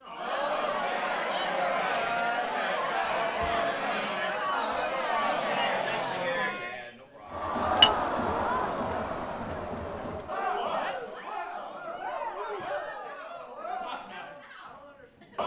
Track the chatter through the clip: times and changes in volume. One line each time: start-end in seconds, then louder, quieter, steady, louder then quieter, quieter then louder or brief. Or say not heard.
0.0-15.4 quieter.